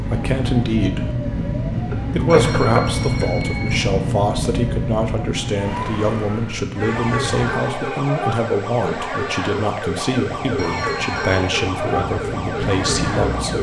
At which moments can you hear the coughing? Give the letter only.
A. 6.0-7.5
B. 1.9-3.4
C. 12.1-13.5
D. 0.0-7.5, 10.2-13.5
B.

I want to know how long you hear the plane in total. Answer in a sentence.
The plane can be heard for 11 seconds in total.